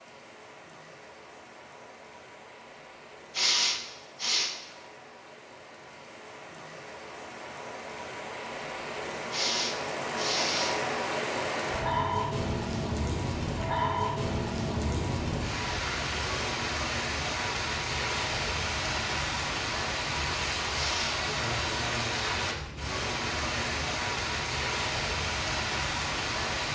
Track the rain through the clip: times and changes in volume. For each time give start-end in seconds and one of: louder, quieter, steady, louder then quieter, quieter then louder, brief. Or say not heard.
0.0-26.7 louder.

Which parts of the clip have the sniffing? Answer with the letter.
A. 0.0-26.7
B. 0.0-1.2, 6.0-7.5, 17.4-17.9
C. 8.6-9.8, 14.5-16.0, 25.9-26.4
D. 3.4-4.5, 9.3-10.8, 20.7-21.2
D.